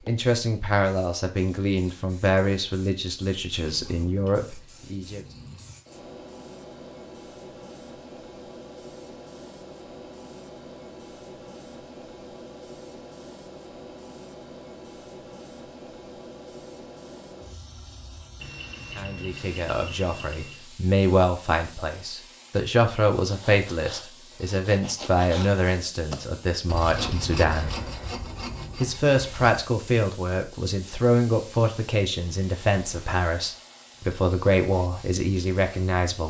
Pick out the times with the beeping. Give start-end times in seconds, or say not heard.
18.4-20.6.